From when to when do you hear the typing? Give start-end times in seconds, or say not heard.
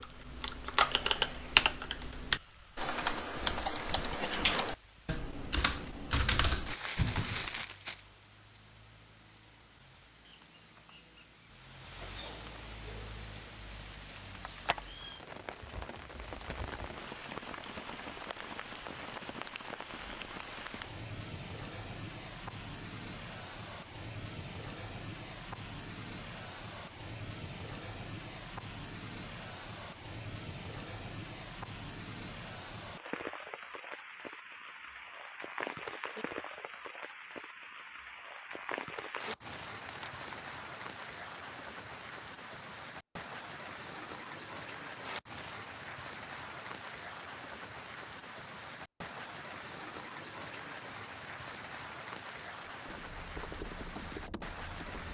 0.0-7.6, 52.9-55.0.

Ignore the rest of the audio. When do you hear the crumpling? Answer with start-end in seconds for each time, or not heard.
6.7-8.1, 38.5-40.5.